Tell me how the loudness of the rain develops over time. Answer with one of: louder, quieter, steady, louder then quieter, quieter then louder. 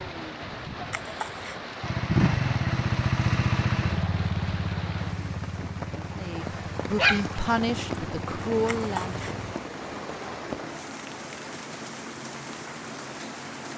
steady.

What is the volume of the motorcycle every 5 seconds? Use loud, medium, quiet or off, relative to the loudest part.
loud, quiet, off.